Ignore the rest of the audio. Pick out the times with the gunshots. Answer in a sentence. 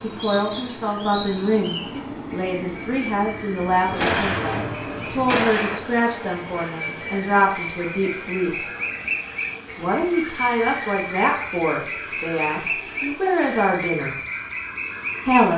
You can hear the gunshots from 4.0 to 5.8 s.